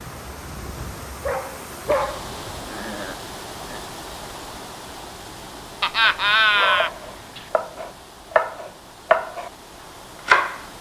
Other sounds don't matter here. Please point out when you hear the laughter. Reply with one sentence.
You can hear the laughter from 1.9 to 3.8 s and from 5.8 to 6.9 s.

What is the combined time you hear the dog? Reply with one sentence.
You can hear the dog for 3 seconds altogether.